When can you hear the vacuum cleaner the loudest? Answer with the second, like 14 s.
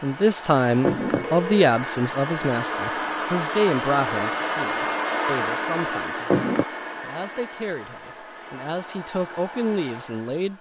5 s.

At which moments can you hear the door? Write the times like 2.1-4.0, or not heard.
not heard.